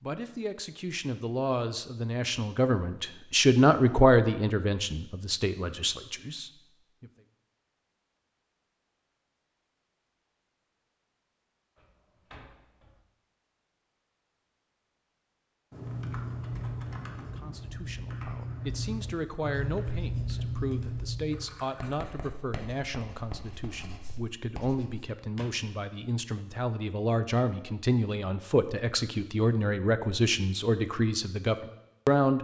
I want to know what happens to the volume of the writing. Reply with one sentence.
The volume of the writing goes up, then down.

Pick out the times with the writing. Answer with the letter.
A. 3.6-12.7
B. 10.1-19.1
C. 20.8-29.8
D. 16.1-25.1
D.